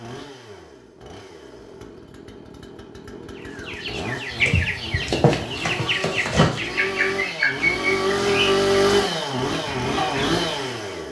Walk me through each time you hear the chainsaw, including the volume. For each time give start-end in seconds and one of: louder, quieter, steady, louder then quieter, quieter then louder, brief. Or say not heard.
0.0-11.0 louder.